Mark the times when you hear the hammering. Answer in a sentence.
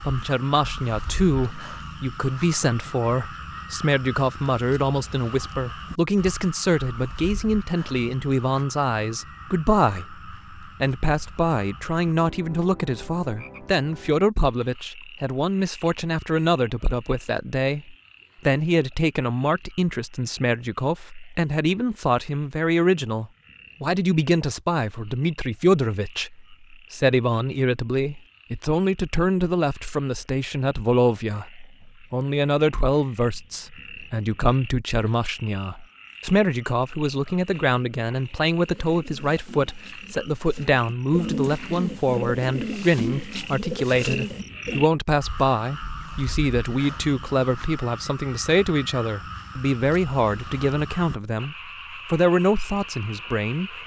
The hammering can't be heard in this clip.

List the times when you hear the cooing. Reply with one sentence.
The cooing can be heard from 38.6 to 44.9 s.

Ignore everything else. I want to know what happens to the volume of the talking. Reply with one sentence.
The loudness of the talking stays about the same.